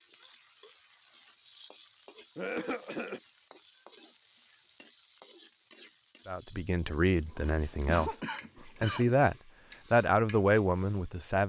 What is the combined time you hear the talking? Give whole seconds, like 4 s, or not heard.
5 s.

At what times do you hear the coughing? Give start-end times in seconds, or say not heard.
2.4-3.2, 7.0-9.2.